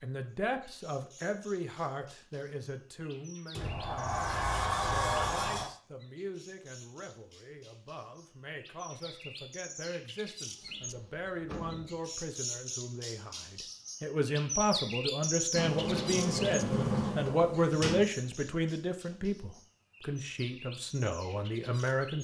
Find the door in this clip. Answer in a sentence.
The door can be heard from 3.5 to 5.7 s, from 10.6 to 12.0 s and from 15.5 to 18.1 s.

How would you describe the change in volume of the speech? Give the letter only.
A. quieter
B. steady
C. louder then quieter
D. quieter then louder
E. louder
D.